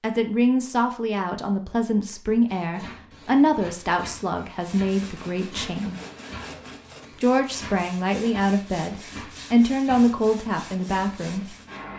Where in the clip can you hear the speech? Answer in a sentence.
You can hear the speech from 0.0 to 6.0 s and from 7.2 to 11.6 s.